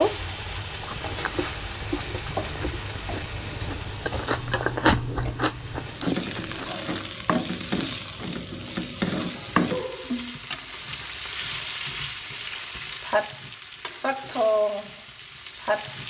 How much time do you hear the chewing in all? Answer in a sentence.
You can hear the chewing for 6 seconds altogether.